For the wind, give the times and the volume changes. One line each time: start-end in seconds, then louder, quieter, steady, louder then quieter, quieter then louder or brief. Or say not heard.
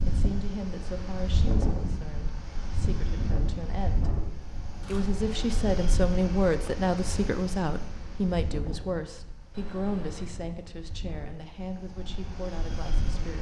0.0-13.3 quieter.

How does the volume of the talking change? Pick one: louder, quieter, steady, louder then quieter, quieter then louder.
louder then quieter.